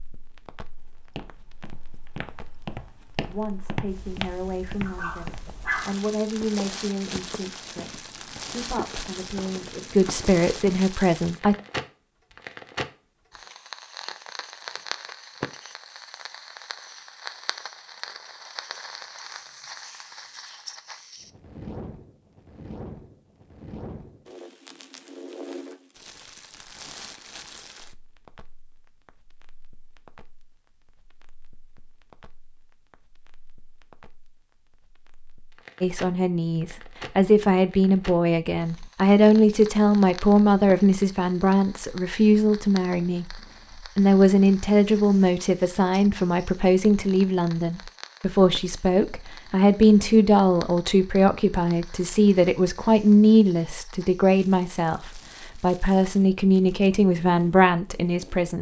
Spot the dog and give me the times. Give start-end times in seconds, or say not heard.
4.8-6.0.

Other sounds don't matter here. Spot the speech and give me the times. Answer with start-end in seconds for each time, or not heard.
3.2-11.6, 35.8-43.4, 44.0-58.5.